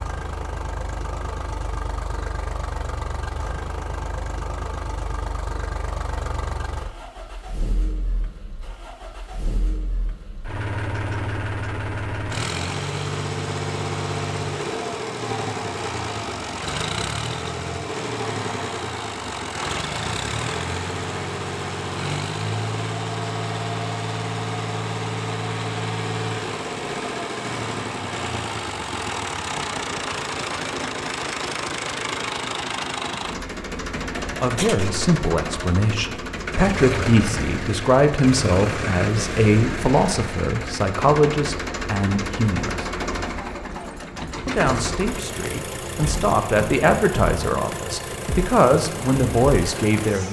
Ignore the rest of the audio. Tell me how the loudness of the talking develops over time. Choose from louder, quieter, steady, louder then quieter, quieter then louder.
steady.